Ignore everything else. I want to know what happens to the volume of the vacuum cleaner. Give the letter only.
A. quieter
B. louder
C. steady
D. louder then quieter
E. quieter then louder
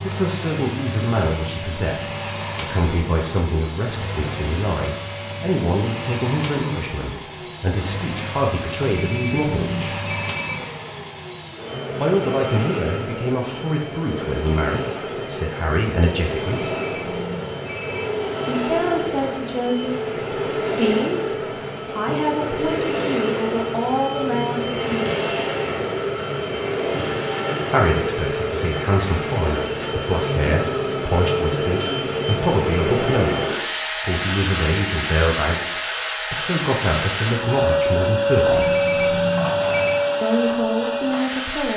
B.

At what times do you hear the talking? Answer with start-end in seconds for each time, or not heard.
0.0-10.0, 11.9-16.7, 18.4-25.2, 27.7-38.8, 40.2-41.7.